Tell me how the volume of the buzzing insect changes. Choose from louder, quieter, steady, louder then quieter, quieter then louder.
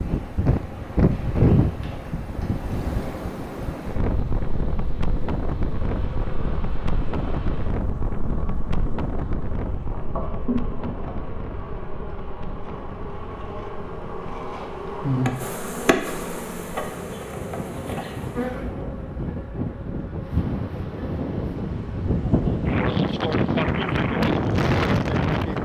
louder then quieter.